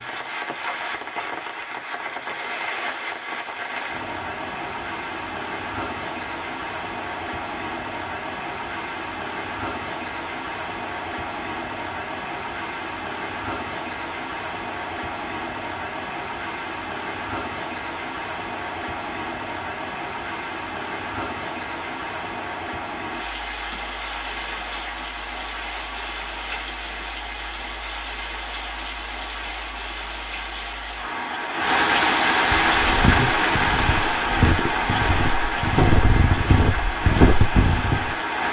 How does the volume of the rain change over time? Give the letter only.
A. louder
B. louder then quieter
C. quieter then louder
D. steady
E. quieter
A.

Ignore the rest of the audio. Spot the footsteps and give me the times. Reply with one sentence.
You can hear the footsteps from 32.6 to 38.1 s.